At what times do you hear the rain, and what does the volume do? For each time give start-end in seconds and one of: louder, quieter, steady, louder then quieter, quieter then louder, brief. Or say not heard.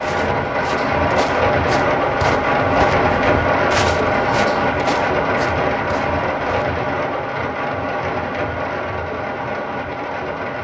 0.0-10.5 quieter.